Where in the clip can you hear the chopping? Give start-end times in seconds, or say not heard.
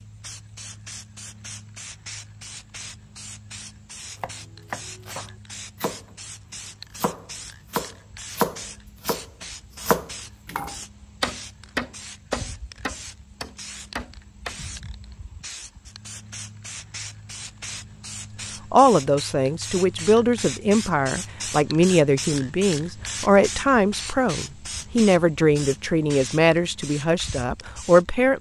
4.2-6.2, 7.0-14.6.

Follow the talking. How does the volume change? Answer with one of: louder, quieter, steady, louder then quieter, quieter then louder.
steady.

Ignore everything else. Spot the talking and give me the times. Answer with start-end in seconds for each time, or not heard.
18.7-28.3.